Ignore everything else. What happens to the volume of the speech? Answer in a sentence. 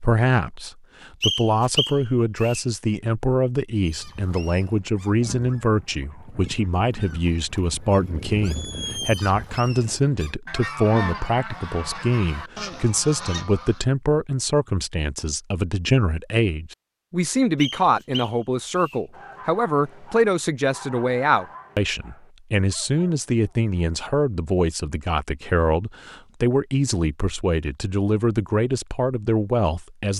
The loudness of the speech stays about the same.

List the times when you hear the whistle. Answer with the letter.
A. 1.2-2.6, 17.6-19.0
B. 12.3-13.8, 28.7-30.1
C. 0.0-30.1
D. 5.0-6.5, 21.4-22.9
A.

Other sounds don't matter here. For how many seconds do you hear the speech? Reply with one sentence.
The speech can be heard for 30 seconds in total.